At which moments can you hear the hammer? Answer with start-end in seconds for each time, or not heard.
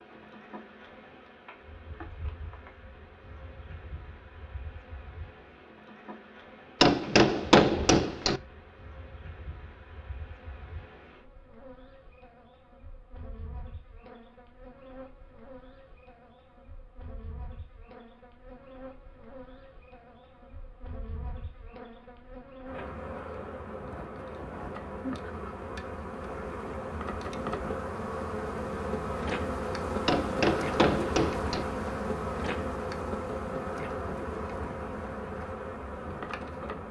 6.8-8.4, 30.1-31.6.